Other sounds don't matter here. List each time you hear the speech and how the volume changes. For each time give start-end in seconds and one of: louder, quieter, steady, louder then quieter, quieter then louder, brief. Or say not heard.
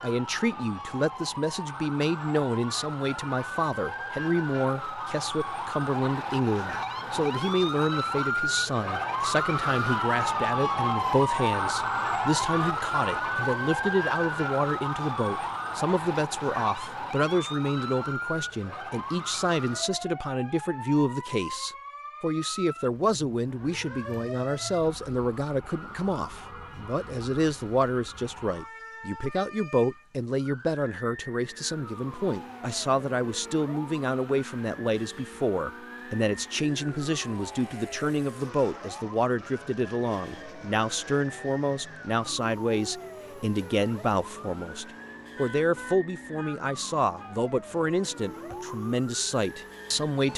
0.0-50.3 steady.